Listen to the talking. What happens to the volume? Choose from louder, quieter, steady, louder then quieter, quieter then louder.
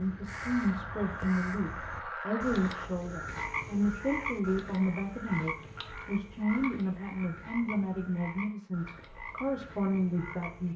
steady.